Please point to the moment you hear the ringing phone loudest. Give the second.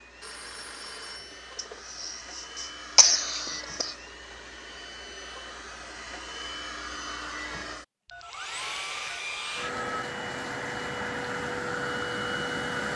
10 s.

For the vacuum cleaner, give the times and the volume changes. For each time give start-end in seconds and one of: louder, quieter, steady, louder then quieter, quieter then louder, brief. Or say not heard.
0.0-12.9 louder.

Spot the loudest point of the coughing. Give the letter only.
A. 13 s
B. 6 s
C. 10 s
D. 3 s
D.